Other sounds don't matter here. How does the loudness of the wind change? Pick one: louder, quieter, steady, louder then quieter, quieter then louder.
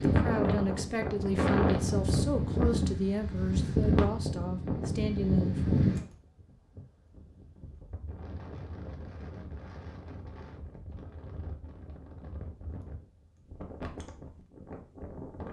quieter.